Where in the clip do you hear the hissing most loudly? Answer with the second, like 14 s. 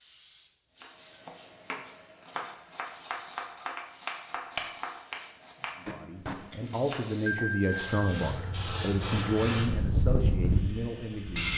10 s.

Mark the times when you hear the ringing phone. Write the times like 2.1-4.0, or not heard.
7.2-8.2.